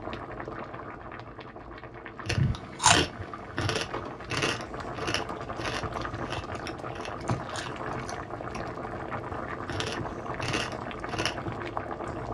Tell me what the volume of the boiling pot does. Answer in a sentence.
The loudness of the boiling pot goes up.